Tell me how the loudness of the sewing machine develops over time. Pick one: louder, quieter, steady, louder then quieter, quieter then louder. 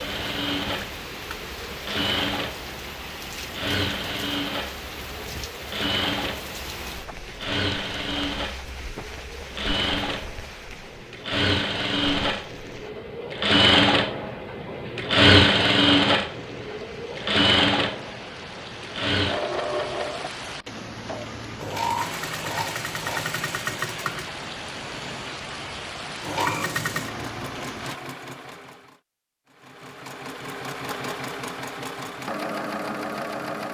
louder then quieter.